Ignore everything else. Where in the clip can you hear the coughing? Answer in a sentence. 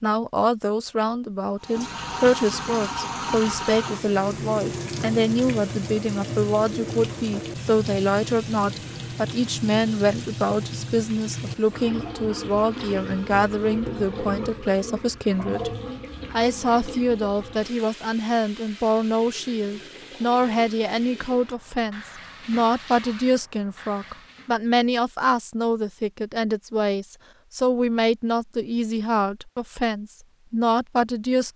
You can't hear the coughing here.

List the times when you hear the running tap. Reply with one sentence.
You can hear the running tap from 1.6 to 24.6 s.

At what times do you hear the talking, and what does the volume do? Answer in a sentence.
You can hear the talking from 0.0 to 15.7 s, at a steady volume; and from 16.3 to 31.5 s, at a steady volume.